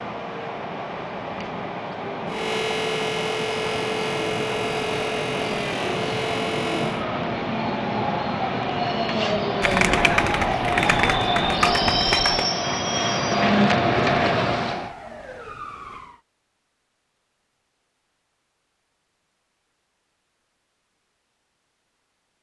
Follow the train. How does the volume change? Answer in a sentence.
The volume of the train goes up.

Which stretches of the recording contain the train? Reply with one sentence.
The train can be heard from 0.0 to 14.9 s.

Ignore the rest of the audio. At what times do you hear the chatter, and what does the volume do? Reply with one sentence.
You can't hear the chatter here.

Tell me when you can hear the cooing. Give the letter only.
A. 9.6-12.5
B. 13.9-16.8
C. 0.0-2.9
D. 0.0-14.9
A.